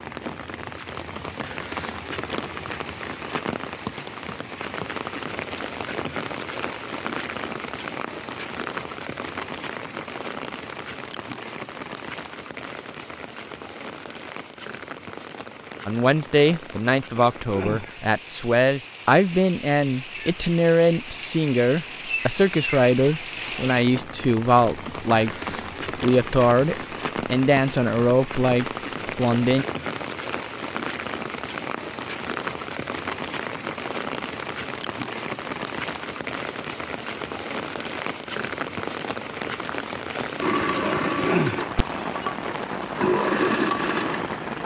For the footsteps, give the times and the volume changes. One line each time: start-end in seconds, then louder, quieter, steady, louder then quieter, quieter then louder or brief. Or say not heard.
not heard.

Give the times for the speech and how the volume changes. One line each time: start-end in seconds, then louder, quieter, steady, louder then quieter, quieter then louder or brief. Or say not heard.
15.8-29.6 steady.